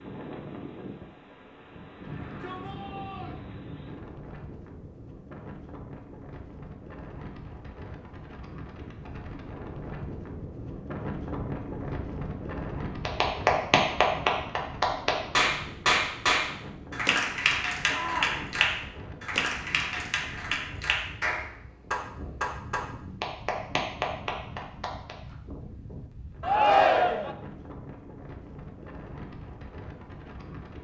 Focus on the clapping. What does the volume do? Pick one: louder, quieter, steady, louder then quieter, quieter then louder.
quieter.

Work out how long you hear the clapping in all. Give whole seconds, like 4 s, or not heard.
12 s.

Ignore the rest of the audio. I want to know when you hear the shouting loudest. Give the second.
27 s.